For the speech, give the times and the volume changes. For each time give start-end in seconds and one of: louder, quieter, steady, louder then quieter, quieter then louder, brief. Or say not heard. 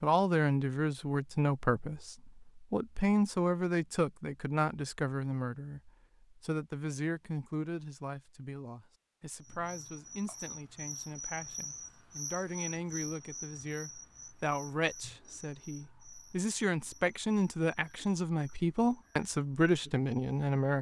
0.0-20.7 quieter then louder.